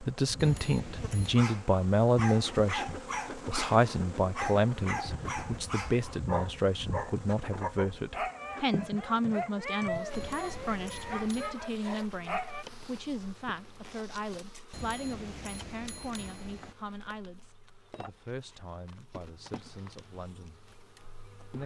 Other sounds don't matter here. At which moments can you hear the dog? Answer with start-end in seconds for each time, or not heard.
1.2-12.7.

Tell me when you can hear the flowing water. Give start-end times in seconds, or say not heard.
not heard.